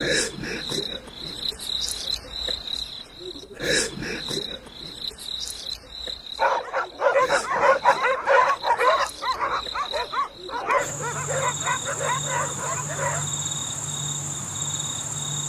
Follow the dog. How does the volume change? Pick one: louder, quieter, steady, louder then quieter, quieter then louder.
quieter.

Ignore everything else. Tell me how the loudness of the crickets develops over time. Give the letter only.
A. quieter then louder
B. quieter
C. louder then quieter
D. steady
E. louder
A.